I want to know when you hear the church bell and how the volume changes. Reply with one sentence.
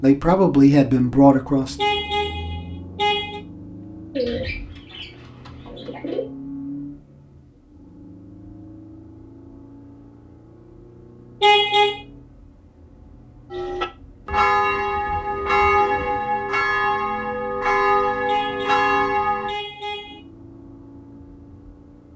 The church bell can be heard from 13.5 to 19.6 s, at a steady volume.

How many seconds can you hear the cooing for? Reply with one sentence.
You can hear the cooing for 4 seconds altogether.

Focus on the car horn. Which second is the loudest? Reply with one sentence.
The loudest moment of the car horn is at 12 seconds.